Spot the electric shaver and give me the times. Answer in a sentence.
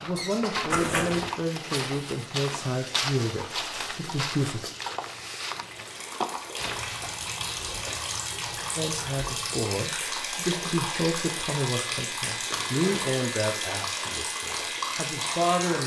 You can hear the electric shaver from 6.5 to 15.8 s.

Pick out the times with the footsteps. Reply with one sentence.
The footsteps can be heard from 0.0 to 7.2 s.